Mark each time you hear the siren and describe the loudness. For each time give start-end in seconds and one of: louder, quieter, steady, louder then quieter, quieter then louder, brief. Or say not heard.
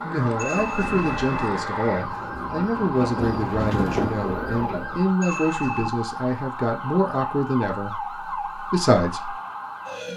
0.0-10.1 steady.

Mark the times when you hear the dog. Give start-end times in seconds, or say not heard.
not heard.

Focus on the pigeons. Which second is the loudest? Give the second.
4 s.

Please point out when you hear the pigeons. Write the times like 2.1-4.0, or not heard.
0.0-5.2.